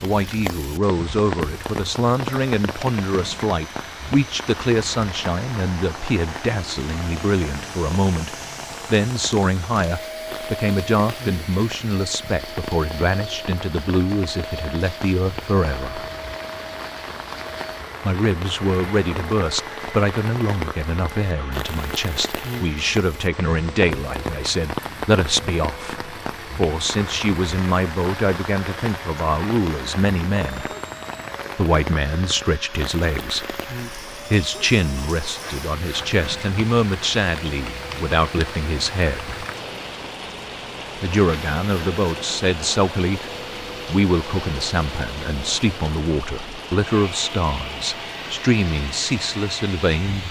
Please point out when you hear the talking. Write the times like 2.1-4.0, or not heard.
0.0-16.1, 18.0-30.7, 31.6-39.5, 41.0-50.2.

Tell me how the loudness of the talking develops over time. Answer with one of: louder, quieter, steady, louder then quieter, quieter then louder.
steady.